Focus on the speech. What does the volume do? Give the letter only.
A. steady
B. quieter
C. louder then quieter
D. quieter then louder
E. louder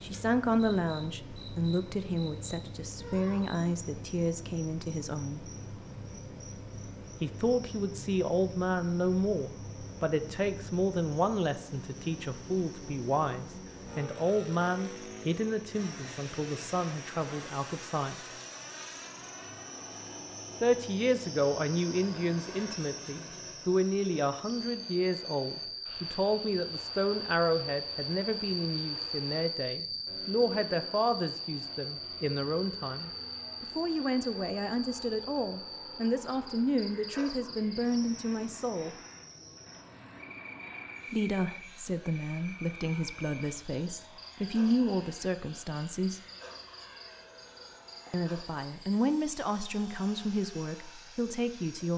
A.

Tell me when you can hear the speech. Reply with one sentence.
The speech can be heard from 0.0 to 5.5 s, from 7.2 to 18.1 s, from 20.6 to 39.0 s, from 41.1 to 46.2 s and from 48.1 to 51.9 s.